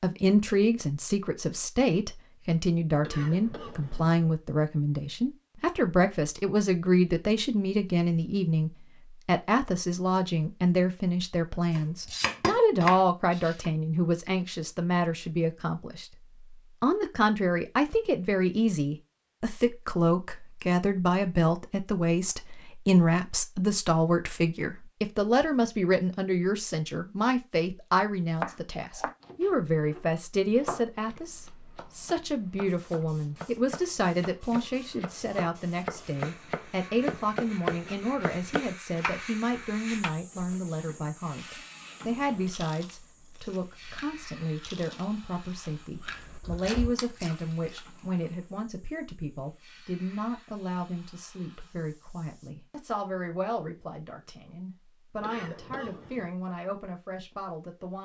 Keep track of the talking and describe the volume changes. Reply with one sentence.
The volume of the talking goes down.